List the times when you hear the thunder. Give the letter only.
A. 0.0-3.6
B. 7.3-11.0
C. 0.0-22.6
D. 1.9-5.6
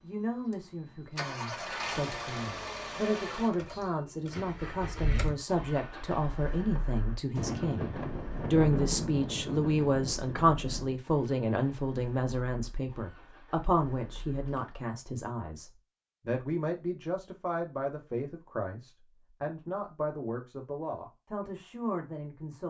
B.